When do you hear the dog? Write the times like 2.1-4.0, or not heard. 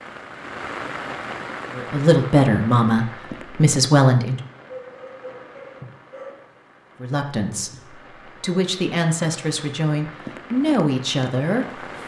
4.7-6.3.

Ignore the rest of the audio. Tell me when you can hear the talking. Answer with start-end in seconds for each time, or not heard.
1.7-4.4, 7.0-11.8.